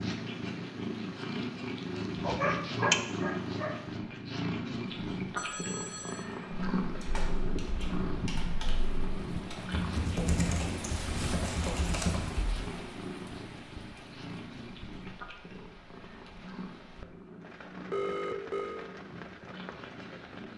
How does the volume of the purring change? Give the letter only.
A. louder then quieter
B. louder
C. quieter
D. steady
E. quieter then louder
C.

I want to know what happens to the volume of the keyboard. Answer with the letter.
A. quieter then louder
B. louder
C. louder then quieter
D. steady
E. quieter
B.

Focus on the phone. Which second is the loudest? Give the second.
18 s.